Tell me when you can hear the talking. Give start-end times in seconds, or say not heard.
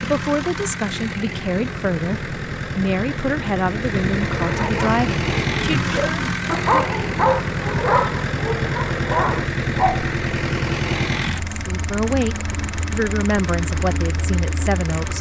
0.0-6.2, 11.5-15.1.